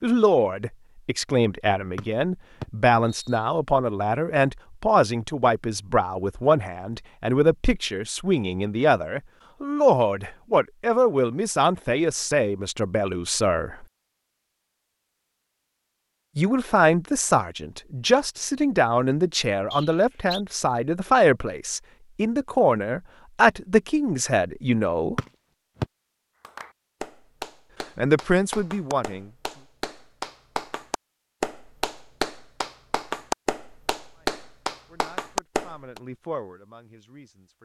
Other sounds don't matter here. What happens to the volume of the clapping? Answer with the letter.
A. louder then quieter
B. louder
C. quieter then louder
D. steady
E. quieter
B.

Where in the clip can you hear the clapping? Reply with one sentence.
You can hear the clapping from 26.4 to 36.0 s.